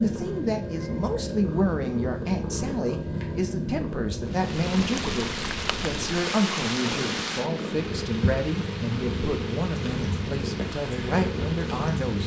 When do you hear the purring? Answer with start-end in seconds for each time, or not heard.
0.0-12.2.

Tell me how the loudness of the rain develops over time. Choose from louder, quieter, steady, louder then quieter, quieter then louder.
quieter.